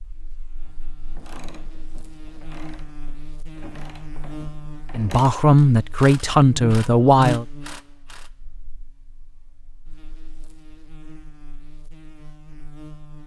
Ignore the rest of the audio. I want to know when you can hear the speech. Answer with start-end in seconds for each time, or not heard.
5.0-7.5.